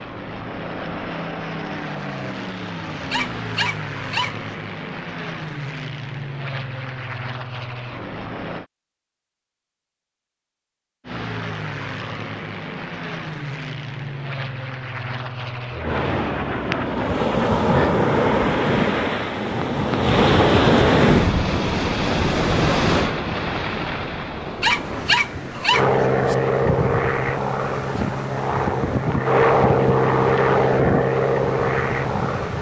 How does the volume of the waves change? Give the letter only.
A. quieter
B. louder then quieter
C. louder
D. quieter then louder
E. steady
A.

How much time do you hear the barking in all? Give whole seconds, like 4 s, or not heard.
3 s.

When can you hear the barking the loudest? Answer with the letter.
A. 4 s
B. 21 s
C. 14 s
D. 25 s
D.